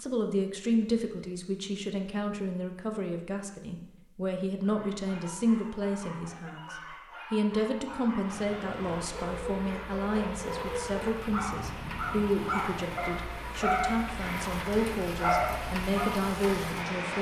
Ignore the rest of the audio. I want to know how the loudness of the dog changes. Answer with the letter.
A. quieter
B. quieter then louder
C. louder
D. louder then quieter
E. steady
C.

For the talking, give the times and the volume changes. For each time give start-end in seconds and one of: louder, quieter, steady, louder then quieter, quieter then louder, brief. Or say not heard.
0.0-17.1 steady.